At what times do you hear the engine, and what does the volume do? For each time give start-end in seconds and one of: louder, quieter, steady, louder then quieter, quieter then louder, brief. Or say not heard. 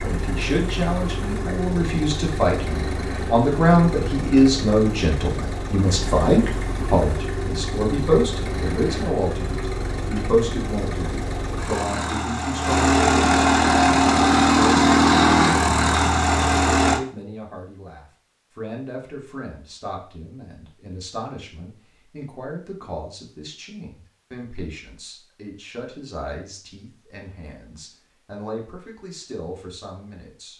0.0-17.0 louder.